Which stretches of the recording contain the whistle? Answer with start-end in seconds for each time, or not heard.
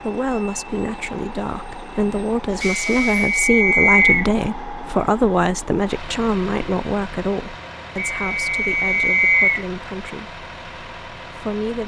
2.6-4.3, 8.0-9.7.